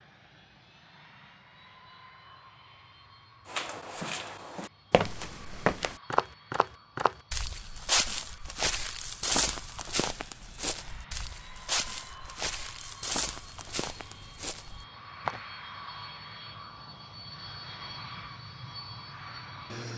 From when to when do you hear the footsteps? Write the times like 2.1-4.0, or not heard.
3.5-15.4.